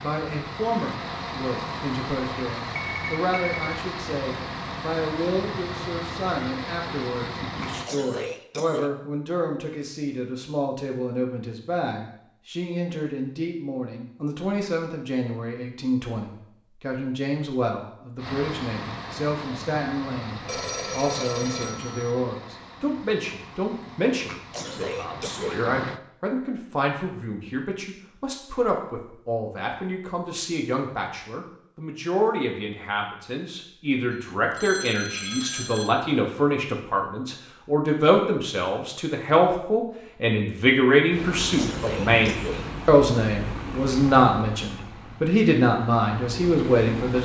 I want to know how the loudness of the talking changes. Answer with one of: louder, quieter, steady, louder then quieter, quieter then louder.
louder.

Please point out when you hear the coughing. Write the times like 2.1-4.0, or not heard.
7.6-8.9, 24.2-25.6, 41.5-42.7.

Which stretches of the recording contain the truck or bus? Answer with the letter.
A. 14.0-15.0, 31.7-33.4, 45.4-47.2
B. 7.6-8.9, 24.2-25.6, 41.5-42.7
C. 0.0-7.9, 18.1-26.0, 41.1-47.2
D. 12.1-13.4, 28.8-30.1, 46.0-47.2
C.